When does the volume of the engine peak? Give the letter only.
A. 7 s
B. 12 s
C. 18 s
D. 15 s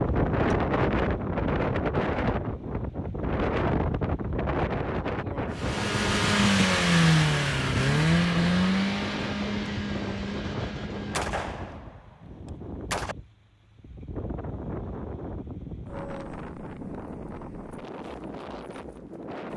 A.